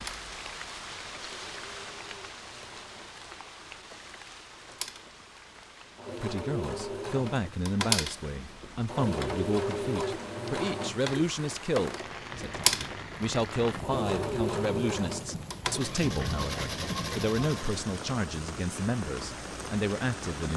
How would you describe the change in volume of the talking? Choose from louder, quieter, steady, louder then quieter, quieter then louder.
steady.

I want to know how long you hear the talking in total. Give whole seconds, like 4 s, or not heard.
14 s.